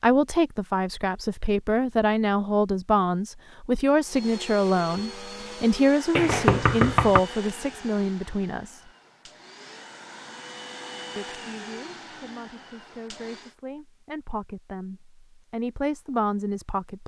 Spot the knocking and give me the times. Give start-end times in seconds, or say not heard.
6.2-7.2.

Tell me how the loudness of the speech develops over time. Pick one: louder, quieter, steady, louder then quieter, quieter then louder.
quieter then louder.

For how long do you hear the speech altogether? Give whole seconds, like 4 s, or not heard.
15 s.